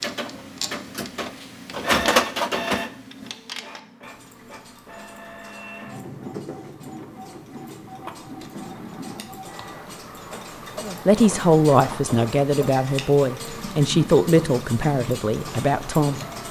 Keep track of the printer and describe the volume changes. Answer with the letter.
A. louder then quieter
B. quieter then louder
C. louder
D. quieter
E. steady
D.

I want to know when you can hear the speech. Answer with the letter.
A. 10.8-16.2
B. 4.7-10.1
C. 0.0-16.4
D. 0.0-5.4
A.